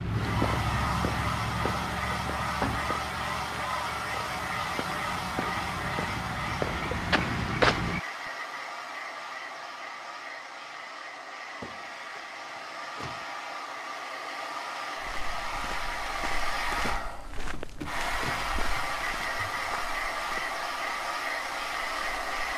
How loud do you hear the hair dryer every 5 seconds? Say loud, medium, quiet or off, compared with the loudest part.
loud, loud, medium, loud, loud.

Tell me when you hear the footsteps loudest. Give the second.
8 s.